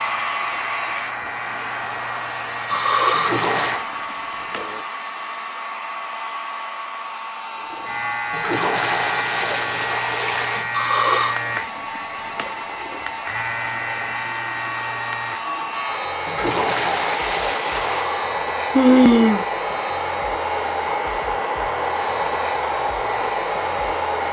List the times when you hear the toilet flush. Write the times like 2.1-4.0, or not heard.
3.1-3.9, 8.3-10.7, 16.2-18.1.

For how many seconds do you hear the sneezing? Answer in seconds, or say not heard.
3 s.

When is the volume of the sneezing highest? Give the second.
19 s.